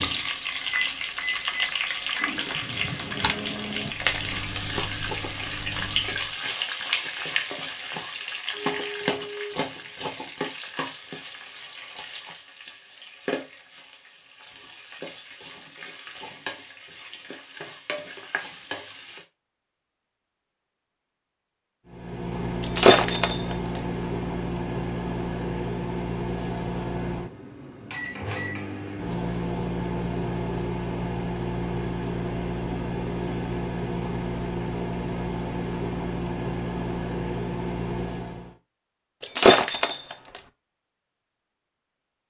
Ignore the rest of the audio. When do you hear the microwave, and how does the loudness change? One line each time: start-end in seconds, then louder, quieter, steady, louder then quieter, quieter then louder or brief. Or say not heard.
0.0-6.3 quieter
21.9-38.5 steady.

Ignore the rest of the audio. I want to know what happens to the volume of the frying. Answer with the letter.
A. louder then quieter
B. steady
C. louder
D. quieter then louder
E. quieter
E.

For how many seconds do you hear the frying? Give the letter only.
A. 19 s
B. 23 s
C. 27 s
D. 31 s
A.